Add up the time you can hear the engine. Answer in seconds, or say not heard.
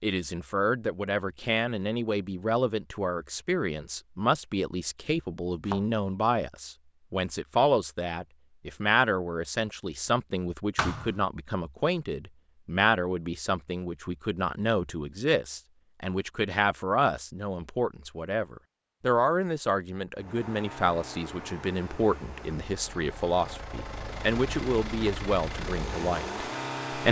7 s.